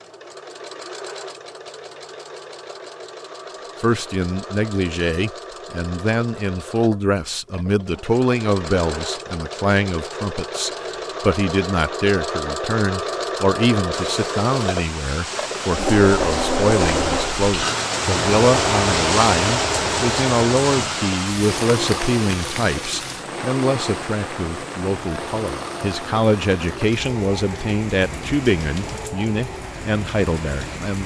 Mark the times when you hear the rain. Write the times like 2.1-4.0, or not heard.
13.9-31.0.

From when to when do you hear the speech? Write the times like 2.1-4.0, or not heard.
3.8-31.0.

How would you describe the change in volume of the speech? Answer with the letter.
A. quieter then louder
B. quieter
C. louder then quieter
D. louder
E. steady
E.